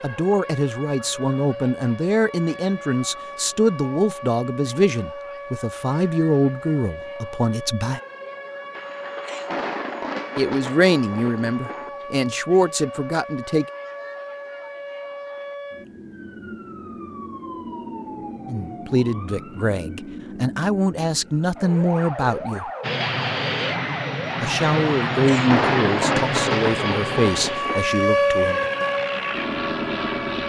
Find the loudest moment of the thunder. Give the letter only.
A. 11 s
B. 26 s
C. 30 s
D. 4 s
B.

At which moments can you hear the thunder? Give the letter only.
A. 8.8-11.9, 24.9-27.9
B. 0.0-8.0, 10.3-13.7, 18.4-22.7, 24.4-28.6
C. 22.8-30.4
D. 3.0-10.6
A.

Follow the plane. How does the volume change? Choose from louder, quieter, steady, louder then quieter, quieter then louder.
quieter then louder.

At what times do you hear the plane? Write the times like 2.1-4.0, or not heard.
22.8-30.4.